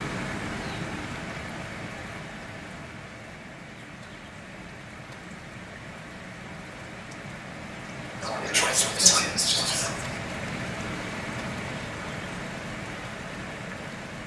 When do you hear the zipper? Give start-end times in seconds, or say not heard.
not heard.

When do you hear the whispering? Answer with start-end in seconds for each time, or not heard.
8.2-10.2.